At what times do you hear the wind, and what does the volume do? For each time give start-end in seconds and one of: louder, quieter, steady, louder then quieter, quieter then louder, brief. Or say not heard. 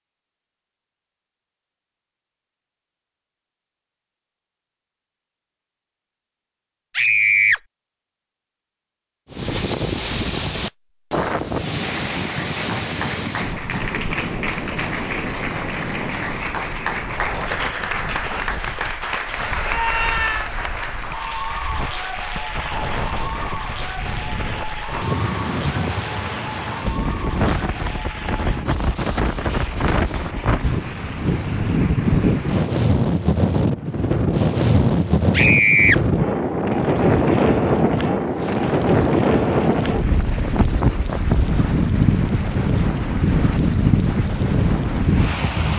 9.3-45.7 quieter then louder.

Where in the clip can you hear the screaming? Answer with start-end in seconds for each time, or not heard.
7.0-7.6, 19.6-20.5, 35.3-36.0.